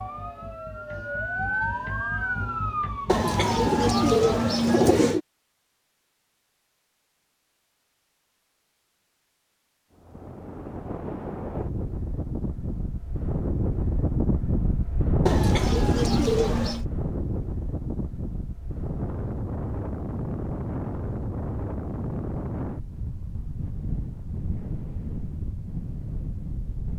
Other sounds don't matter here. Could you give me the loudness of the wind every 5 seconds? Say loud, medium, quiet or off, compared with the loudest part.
off, off, loud, loud, loud, medium.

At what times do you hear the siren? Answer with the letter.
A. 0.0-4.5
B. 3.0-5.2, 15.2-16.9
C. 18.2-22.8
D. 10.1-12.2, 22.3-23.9
A.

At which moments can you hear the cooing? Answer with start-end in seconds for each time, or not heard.
3.0-5.2, 15.2-16.9.